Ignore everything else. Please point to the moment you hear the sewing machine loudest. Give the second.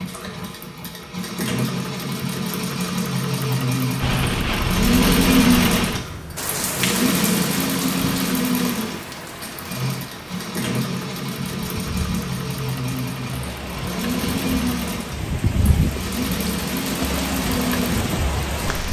5 s.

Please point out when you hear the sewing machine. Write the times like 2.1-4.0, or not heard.
0.0-18.8.